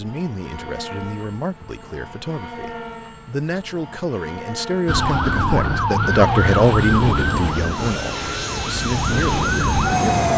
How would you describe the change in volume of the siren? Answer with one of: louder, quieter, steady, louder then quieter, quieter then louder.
quieter then louder.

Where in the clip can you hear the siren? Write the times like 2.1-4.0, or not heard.
4.8-10.3.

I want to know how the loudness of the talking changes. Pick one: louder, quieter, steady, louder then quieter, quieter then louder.
louder then quieter.